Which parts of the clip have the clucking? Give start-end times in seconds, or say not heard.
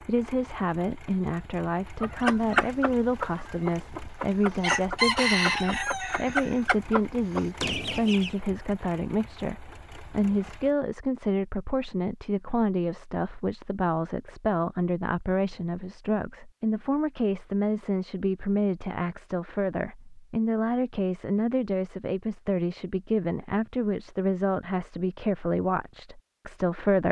2.0-8.3.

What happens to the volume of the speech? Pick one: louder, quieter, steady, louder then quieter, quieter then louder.
steady.